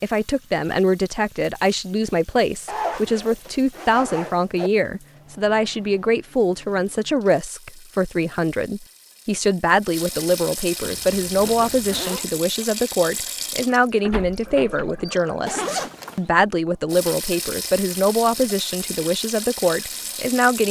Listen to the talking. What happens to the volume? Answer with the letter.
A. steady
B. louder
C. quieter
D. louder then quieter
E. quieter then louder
A.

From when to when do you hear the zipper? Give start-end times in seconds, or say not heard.
2.6-4.7, 10.8-12.2, 15.4-16.3.